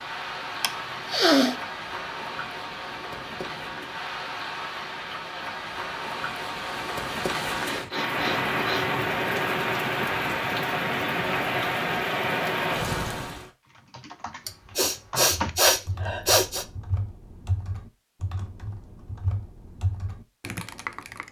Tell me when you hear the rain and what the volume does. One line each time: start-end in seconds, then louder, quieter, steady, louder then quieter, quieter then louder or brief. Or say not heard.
0.0-13.5 louder.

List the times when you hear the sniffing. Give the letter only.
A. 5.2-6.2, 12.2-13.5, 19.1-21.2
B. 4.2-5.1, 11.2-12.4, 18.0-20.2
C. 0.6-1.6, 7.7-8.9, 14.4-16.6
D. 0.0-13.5
C.